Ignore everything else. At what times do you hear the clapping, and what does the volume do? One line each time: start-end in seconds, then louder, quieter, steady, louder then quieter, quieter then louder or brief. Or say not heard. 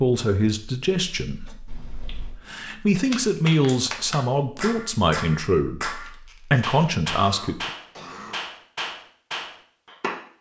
3.0-10.2 steady.